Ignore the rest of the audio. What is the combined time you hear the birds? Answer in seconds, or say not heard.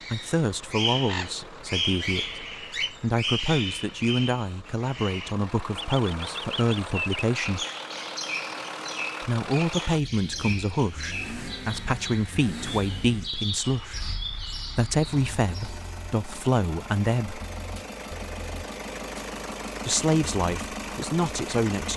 16 s.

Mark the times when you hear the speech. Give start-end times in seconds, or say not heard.
0.1-7.7, 9.2-17.4, 19.9-21.9.